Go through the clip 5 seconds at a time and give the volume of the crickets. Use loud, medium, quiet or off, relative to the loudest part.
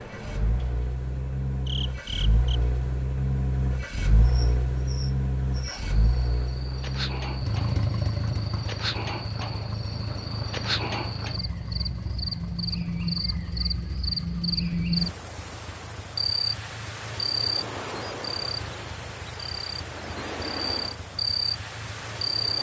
medium, medium, loud, loud, loud.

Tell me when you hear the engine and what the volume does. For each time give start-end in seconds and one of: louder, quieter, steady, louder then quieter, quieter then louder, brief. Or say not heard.
0.0-22.5 quieter.